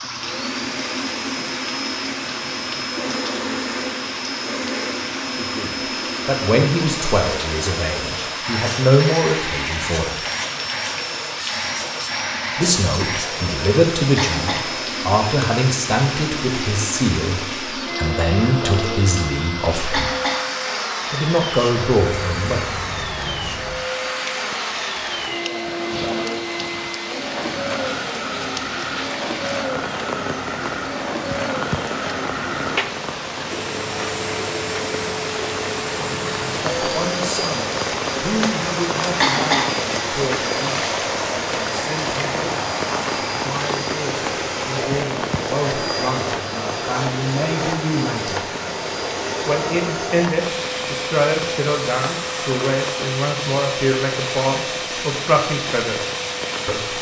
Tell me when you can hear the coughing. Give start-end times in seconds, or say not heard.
14.2-14.7, 19.9-20.5, 39.2-39.8.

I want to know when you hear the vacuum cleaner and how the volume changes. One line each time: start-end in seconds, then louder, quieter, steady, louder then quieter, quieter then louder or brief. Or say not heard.
0.0-56.9 steady.